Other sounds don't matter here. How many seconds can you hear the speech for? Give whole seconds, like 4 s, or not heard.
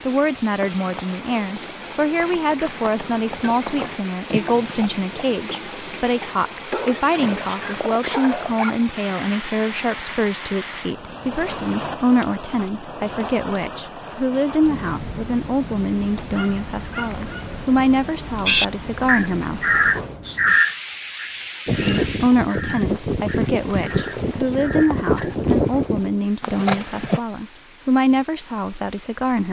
27 s.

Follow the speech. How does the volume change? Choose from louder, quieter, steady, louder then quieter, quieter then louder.
steady.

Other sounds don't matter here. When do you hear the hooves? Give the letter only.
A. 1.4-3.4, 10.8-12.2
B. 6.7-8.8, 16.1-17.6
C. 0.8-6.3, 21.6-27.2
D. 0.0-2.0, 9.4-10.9
C.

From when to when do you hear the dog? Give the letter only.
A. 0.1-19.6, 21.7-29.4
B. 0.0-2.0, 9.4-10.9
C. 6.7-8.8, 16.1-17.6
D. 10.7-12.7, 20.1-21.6
C.